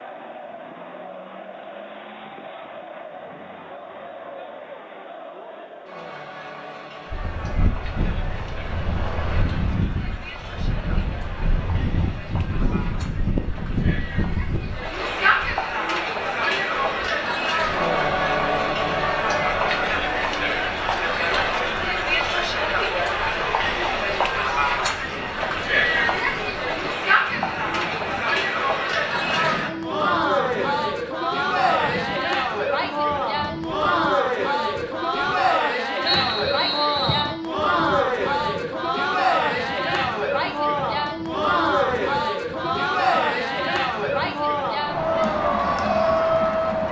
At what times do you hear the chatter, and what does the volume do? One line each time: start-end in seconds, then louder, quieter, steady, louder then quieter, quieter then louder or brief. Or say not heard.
0.0-46.8 louder.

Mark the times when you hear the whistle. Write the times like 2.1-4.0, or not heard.
36.0-37.4.